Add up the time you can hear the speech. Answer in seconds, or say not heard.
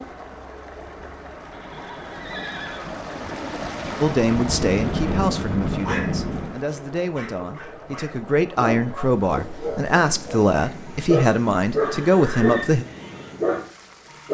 9 s.